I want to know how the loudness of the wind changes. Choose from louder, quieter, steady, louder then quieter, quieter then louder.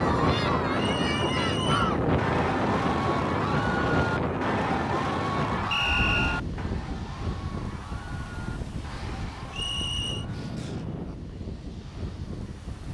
quieter.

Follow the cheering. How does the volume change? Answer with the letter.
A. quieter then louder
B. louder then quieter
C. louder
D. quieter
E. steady
D.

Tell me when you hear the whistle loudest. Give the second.
6 s.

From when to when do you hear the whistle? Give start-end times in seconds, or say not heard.
0.8-1.9, 5.7-6.4, 9.5-10.2.